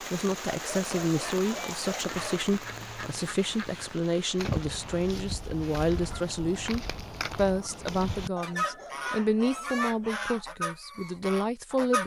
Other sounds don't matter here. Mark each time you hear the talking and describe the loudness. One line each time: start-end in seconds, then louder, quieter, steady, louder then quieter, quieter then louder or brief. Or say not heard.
0.1-12.0 steady.